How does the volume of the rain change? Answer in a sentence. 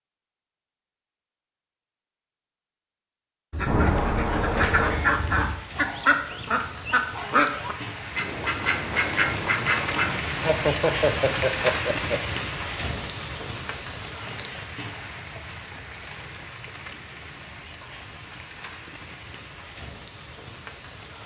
The volume of the rain goes up, then down.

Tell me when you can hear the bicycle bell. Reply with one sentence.
The bicycle bell can be heard from 3.6 to 5.1 s.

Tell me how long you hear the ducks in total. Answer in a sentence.
You can hear the ducks for 7 seconds altogether.